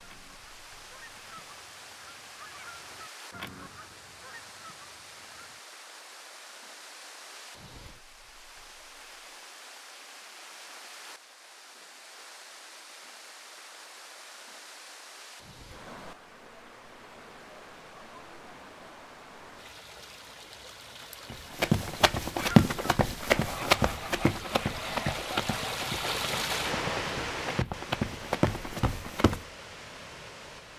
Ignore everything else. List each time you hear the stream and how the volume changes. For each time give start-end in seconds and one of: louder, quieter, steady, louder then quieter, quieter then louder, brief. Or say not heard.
0.0-30.7 louder.